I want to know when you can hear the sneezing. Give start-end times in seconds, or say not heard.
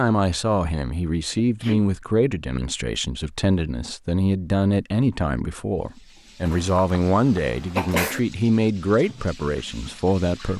1.4-1.9, 6.5-8.2.